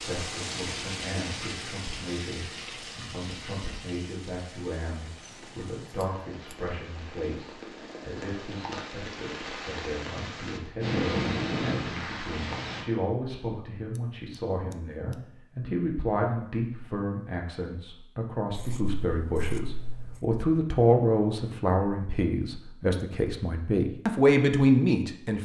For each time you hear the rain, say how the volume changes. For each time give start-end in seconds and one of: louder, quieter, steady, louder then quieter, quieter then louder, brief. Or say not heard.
0.0-12.8 quieter then louder.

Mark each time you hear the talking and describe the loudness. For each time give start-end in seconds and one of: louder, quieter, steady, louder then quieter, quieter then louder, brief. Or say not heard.
0.0-25.3 louder.